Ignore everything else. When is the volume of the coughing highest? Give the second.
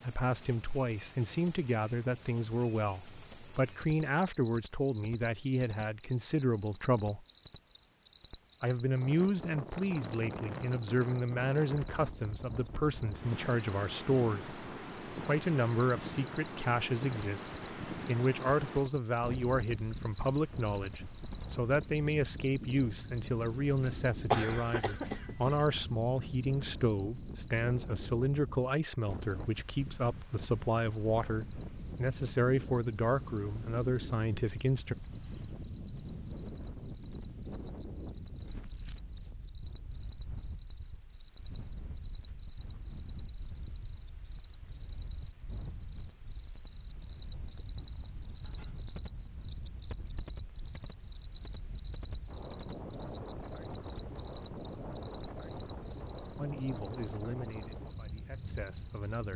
24 s.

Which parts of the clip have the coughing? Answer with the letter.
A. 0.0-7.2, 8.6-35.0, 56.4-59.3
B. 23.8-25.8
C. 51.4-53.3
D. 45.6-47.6
B.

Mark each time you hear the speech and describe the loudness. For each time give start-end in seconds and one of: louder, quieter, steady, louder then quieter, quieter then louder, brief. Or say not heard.
0.0-7.2 steady
8.6-35.0 steady
56.4-59.3 brief.